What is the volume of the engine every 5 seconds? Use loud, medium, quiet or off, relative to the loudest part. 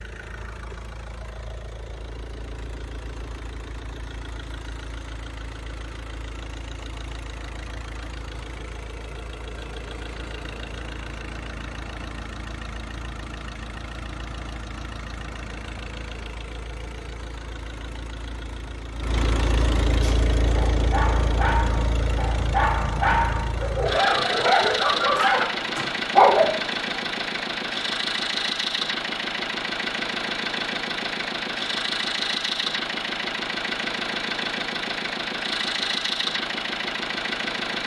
quiet, quiet, medium, medium, loud, loud, loud, loud.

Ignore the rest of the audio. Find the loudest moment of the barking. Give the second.
26 s.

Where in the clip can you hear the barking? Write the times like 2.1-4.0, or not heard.
20.0-26.6.